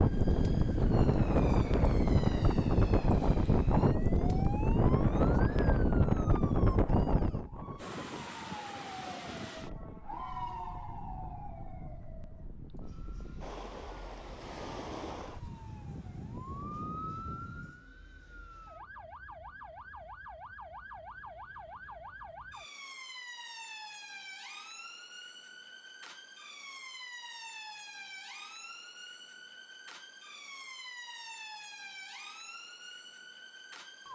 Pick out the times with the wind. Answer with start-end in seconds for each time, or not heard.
0.0-17.9.